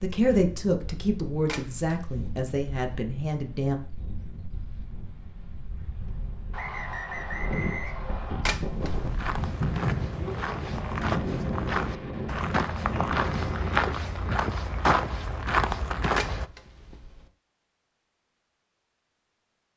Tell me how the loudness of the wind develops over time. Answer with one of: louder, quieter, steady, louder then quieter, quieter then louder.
louder.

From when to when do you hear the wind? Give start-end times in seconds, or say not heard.
0.1-14.0.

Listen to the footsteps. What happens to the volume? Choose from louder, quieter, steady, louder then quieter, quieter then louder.
louder.